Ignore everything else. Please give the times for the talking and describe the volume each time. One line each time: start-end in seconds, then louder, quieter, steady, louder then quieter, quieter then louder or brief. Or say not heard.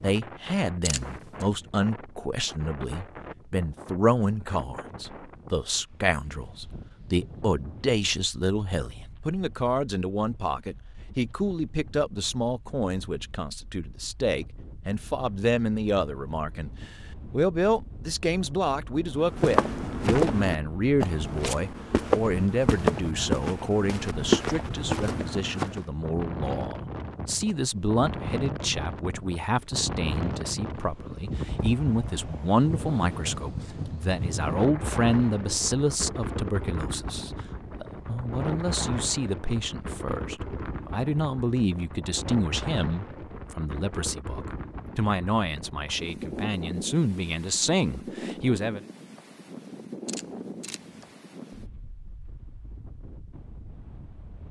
0.0-48.8 steady.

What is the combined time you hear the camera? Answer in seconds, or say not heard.
2 s.